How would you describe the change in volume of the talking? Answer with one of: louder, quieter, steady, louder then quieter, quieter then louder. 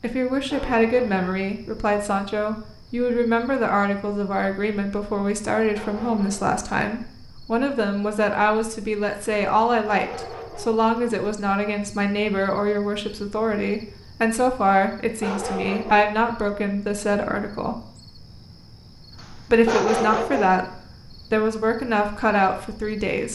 steady.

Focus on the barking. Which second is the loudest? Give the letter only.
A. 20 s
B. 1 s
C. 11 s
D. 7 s
A.